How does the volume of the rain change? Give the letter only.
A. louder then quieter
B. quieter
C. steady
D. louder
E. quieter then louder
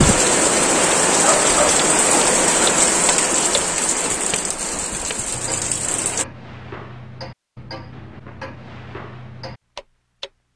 B.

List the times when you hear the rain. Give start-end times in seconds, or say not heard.
0.0-6.2.